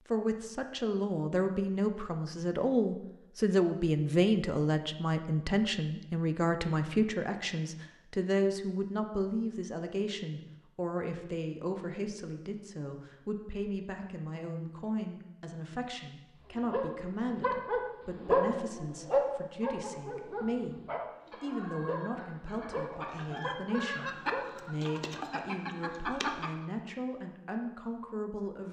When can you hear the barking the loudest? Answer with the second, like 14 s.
18 s.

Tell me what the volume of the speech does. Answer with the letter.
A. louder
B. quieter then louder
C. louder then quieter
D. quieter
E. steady
D.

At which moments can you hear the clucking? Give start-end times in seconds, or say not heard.
21.2-26.6.